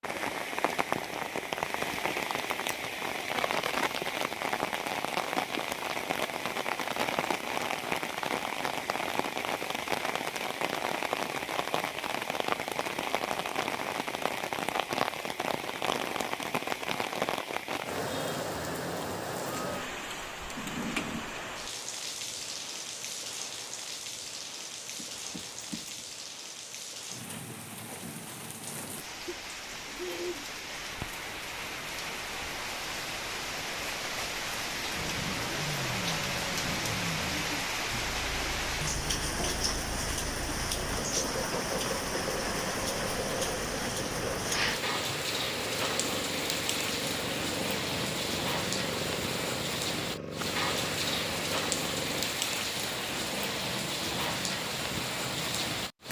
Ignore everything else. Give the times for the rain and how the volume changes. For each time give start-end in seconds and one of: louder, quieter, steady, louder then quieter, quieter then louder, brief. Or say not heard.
0.0-56.0 quieter then louder.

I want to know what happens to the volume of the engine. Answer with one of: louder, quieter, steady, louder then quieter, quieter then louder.
steady.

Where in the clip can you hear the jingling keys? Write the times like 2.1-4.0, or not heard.
24.9-26.1.